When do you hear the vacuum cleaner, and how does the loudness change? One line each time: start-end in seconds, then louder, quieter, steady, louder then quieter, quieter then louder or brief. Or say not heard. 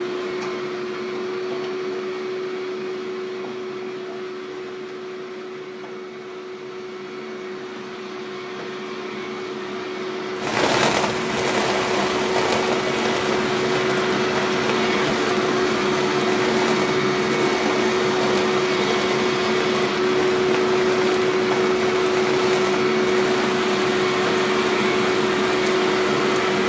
0.0-26.6 louder.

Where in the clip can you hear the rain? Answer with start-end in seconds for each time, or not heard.
10.3-26.6.